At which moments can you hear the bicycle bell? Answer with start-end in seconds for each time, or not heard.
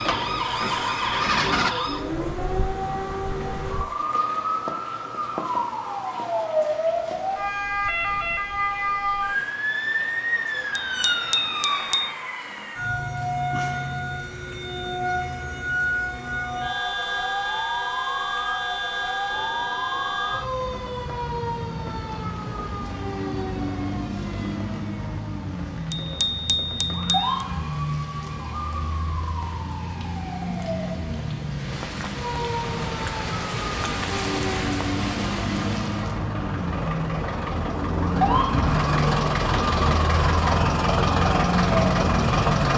10.8-12.1, 25.9-27.4.